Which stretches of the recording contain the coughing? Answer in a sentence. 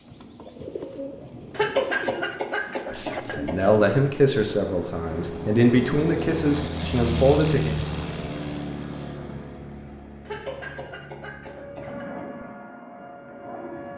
The coughing can be heard from 1.5 to 4.0 s and from 10.2 to 12.2 s.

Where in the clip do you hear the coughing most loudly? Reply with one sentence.
The volume of the coughing peaks at 2 seconds.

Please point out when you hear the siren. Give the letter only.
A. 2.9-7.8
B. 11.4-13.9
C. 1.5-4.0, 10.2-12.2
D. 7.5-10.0
B.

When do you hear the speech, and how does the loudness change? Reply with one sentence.
You can hear the speech from 2.9 to 7.8 s, at a steady volume.